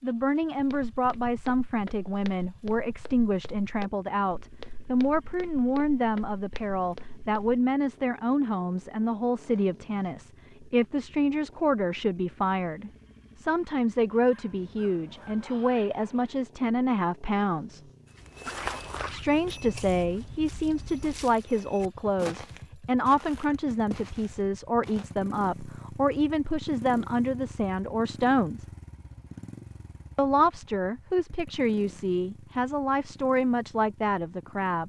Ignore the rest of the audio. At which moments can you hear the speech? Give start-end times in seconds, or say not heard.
0.0-17.8, 19.1-28.6, 30.1-34.8.